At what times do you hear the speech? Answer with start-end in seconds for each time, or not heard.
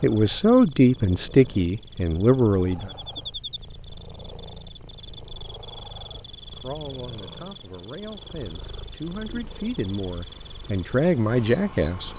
0.0-2.9, 6.5-12.1.